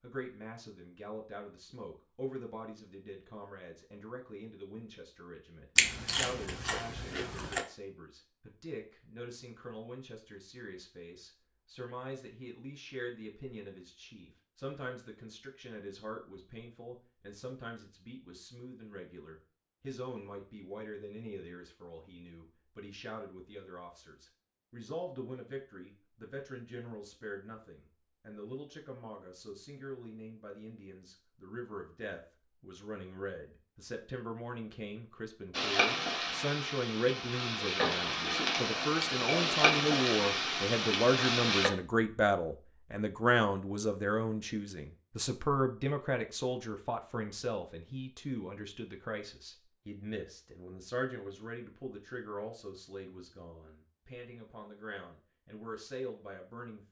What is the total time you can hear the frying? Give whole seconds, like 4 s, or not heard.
6 s.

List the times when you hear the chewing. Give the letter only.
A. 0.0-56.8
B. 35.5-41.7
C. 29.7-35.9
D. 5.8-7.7
D.